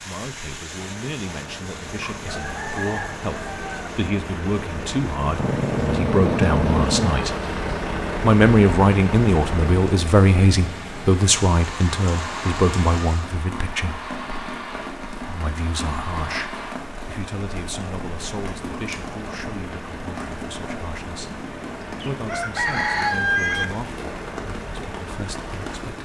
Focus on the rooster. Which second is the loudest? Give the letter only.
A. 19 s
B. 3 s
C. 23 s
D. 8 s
C.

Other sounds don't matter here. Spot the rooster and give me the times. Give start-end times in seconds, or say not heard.
2.0-3.9, 22.0-23.6.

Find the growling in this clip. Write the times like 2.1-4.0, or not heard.
5.3-7.4.